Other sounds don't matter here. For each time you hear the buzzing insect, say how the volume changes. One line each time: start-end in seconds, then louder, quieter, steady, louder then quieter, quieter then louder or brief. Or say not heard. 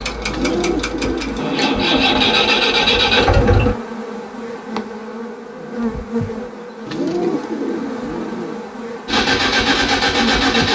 0.0-10.7 steady.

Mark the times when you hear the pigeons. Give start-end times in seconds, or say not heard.
0.2-2.0, 6.8-8.6.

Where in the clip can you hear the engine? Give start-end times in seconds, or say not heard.
0.0-3.8, 9.1-10.7.